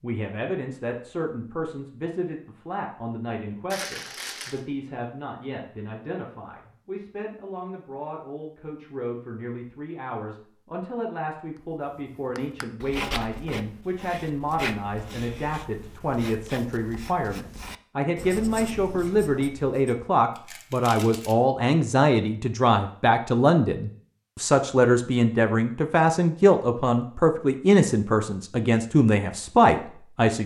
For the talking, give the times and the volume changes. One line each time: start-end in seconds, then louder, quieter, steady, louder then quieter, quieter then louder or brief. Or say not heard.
0.0-30.4 louder.